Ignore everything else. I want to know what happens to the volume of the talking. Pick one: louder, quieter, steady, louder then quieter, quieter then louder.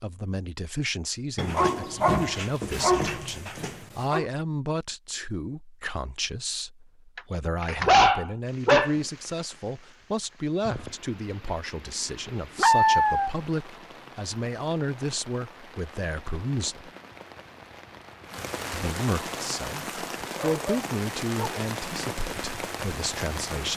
steady.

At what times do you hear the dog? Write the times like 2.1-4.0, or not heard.
1.4-4.2, 7.2-9.0, 12.6-13.3, 20.4-21.6.